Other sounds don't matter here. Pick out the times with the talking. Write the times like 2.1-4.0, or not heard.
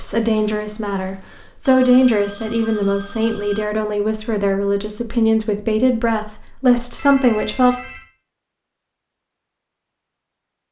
0.0-7.8.